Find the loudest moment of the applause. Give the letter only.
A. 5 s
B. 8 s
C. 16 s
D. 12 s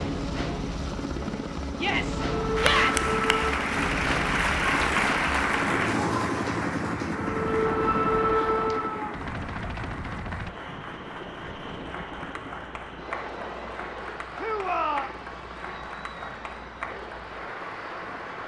A.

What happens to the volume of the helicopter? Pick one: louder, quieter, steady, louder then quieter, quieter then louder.
quieter.